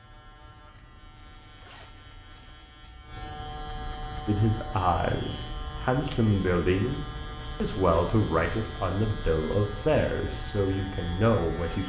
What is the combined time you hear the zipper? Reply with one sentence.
You can hear the zipper for 2 seconds altogether.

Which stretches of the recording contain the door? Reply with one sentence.
You can't hear the door here.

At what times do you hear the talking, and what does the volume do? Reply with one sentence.
The talking can be heard from 4.2 to 11.8 s, at a steady volume.